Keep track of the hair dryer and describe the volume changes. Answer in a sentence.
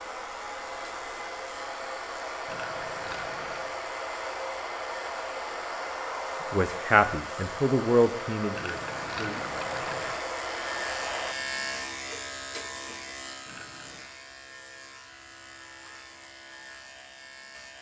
The loudness of the hair dryer stays about the same.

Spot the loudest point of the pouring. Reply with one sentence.
The volume of the pouring peaks at 9 seconds.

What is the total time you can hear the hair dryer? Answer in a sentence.
You can hear the hair dryer for 11 seconds altogether.